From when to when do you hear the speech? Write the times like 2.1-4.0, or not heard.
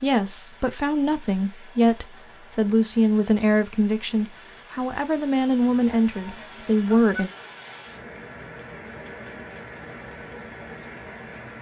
0.0-7.3.